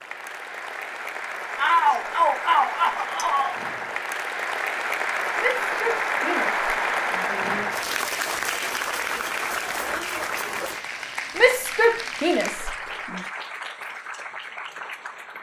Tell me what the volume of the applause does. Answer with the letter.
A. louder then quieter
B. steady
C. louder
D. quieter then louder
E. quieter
A.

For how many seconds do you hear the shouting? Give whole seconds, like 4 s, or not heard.
6 s.